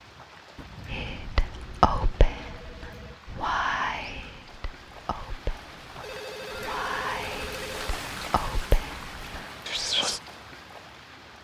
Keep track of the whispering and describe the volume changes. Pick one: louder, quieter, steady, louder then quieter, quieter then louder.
quieter then louder.